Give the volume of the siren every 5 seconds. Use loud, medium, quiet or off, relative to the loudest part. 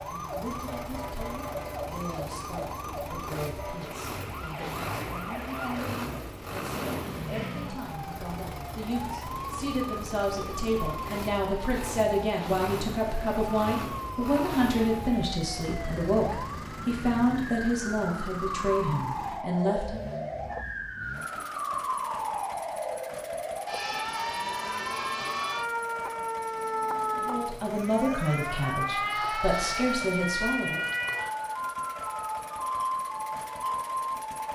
medium, medium, medium, medium, loud, loud, loud.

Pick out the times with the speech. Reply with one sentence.
The speech can be heard from 0.0 to 20.1 s and from 27.1 to 30.8 s.